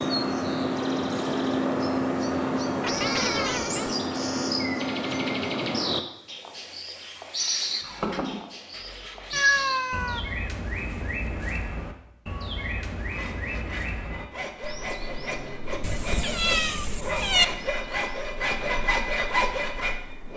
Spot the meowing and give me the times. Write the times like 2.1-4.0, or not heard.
2.8-3.9, 9.3-10.2, 15.8-17.4.